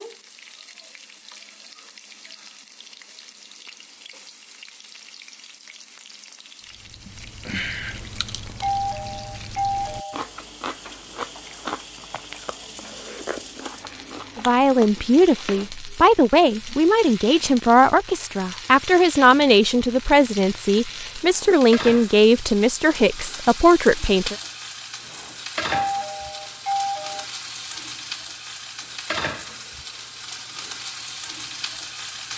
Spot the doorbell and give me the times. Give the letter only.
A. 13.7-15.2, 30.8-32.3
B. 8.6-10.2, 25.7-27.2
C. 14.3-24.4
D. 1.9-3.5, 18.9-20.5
B.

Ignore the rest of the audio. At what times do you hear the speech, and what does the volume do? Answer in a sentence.
You can hear the speech from 14.3 to 24.4 s, at a steady volume.